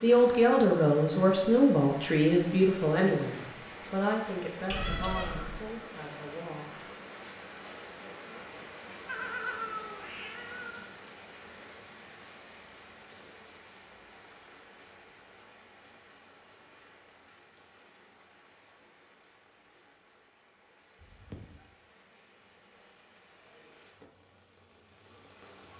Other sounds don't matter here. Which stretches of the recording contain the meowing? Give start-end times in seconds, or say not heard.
4.7-5.7, 9.1-10.8, 20.9-21.6.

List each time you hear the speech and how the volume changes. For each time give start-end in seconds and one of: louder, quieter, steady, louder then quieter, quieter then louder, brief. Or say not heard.
0.0-6.8 quieter.